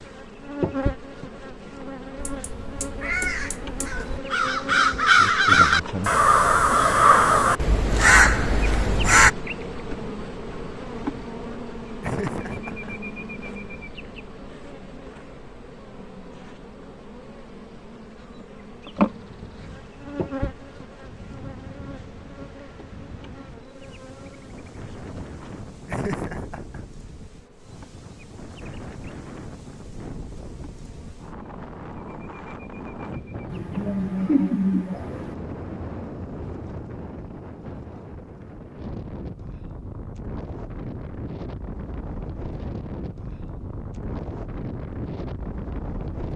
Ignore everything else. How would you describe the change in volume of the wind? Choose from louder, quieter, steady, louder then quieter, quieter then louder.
louder.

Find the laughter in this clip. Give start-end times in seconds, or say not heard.
12.0-13.0, 25.9-26.9, 33.5-35.3.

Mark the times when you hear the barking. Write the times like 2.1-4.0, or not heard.
not heard.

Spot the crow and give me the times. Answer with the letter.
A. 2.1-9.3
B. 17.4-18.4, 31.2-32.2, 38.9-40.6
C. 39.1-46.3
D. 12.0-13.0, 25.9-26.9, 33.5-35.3
A.